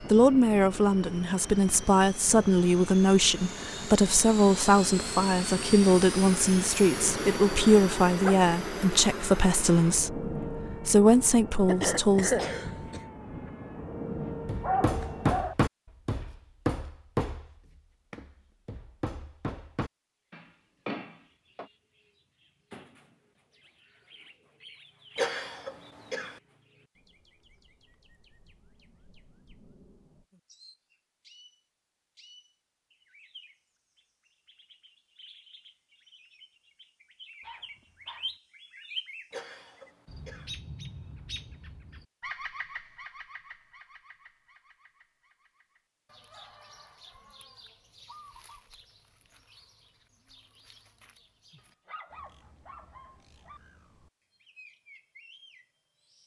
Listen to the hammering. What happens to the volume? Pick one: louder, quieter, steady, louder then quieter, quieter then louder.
quieter then louder.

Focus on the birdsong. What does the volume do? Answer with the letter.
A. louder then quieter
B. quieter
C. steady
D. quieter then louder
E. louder
A.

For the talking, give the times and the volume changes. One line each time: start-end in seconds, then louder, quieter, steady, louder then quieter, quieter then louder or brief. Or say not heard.
0.1-12.4 steady.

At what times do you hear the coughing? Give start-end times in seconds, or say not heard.
11.7-13.0, 25.1-26.4, 39.3-40.5.